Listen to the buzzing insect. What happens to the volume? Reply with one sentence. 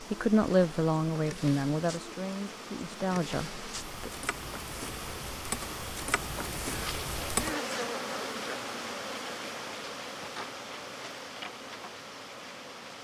The volume of the buzzing insect goes up, then down.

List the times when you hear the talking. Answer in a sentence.
You can hear the talking from 0.0 to 4.1 s.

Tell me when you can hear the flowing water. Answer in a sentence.
You can hear the flowing water from 0.0 to 12.9 s.